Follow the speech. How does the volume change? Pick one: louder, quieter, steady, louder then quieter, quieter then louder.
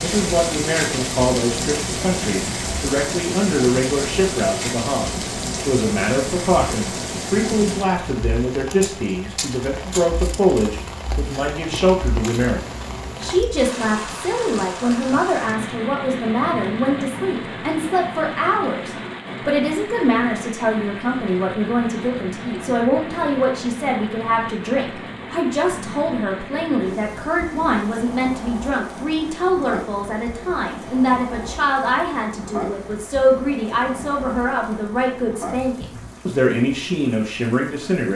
steady.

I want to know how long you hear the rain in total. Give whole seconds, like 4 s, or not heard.
38 s.